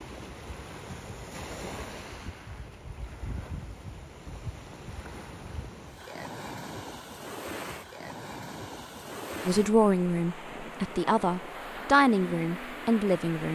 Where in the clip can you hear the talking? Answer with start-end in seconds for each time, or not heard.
9.4-13.4.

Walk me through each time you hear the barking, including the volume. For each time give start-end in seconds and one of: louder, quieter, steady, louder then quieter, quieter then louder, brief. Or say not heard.
not heard.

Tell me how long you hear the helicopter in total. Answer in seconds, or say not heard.
not heard.